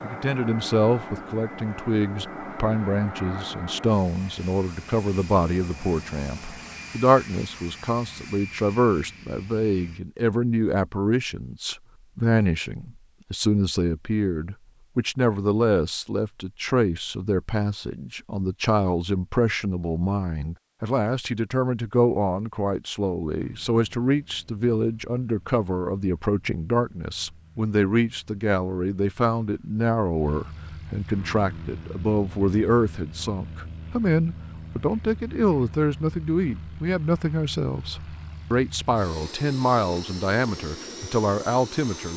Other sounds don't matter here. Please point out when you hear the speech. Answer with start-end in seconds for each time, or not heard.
0.0-42.1.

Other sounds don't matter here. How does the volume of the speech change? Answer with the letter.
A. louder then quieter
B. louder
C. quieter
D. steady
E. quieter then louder
D.